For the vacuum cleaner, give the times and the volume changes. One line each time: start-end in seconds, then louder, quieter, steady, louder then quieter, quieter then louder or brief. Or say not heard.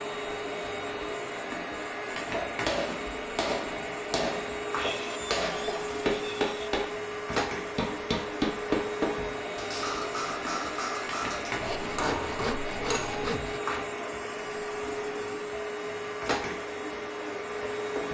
0.0-18.0 steady.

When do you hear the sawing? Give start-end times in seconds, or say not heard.
4.8-6.7, 11.6-13.6.